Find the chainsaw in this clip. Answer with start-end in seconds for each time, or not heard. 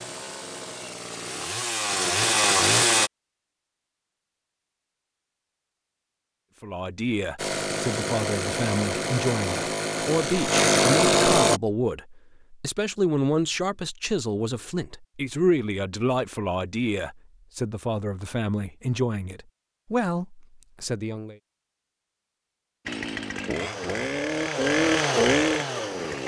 0.0-3.1, 7.3-11.6, 22.9-26.2.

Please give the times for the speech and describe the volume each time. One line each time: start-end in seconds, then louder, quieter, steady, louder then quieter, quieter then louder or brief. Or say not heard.
6.6-21.4 steady.